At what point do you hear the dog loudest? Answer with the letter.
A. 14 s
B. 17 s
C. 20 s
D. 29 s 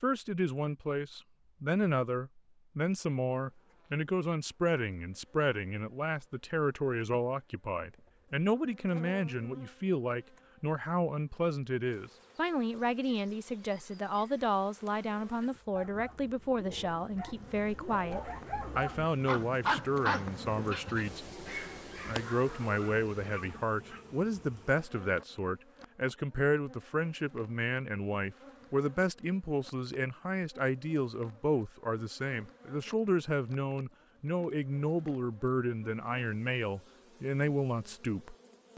C.